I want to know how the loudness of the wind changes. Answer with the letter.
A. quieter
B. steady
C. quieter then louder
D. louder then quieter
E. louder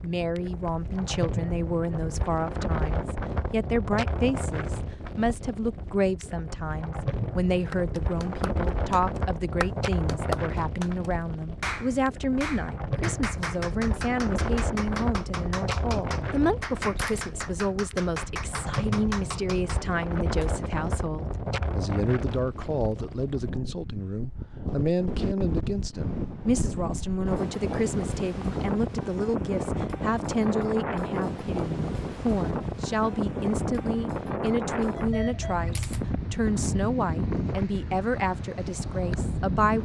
B.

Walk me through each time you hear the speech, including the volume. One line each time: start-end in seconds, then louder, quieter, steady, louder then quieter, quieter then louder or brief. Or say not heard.
0.0-39.8 steady.